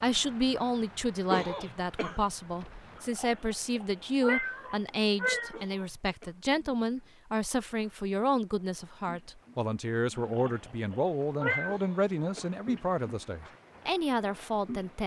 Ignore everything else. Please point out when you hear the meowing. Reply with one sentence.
You can hear the meowing from 3.0 to 5.6 s and from 10.2 to 11.8 s.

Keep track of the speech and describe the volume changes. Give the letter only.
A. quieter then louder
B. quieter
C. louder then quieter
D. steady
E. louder
D.